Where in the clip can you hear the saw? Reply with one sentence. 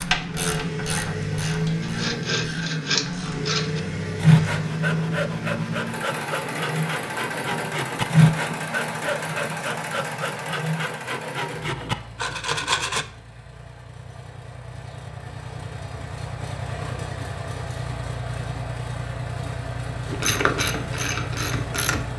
You can hear the saw from 1.8 to 13.1 s.